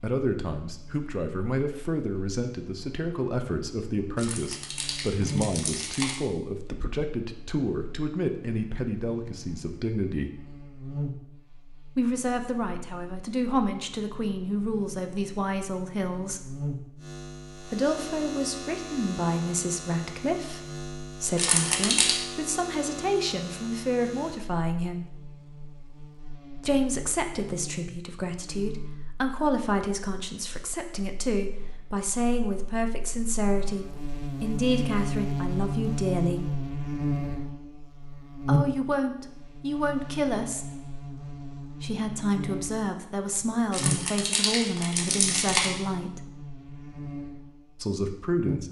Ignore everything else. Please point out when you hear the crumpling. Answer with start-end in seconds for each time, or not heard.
4.2-6.2, 21.4-22.2, 43.7-45.7.